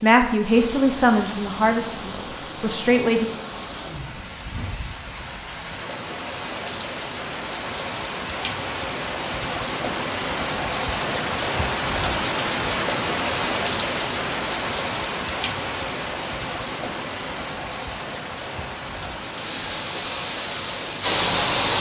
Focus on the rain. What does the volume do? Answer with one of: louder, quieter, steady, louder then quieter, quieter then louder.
louder then quieter.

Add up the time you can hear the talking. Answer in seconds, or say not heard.
3 s.